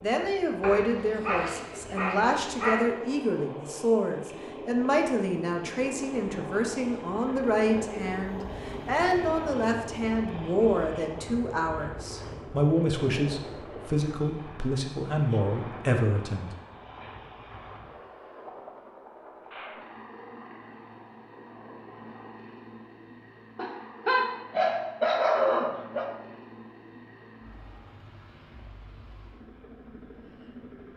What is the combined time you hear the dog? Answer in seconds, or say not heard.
5 s.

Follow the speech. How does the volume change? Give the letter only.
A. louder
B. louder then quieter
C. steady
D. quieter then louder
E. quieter
C.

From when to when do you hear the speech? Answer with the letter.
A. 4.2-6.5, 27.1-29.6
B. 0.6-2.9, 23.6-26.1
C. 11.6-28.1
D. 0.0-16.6
D.